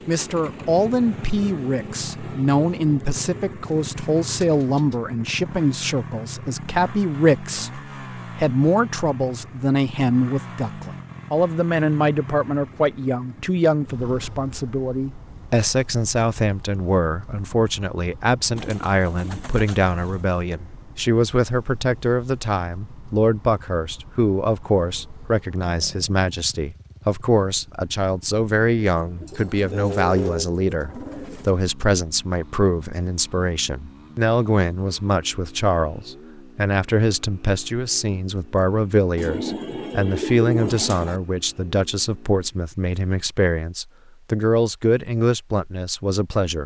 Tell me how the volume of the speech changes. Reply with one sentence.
The loudness of the speech stays about the same.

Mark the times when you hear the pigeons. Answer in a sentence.
The pigeons can be heard from 3.6 to 5.0 s, from 18.6 to 20.2 s, from 29.0 to 31.5 s and from 39.1 to 41.2 s.